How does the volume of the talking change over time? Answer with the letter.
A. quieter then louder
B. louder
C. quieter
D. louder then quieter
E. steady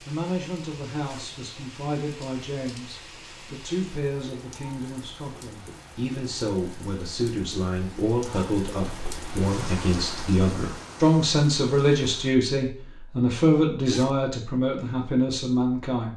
B.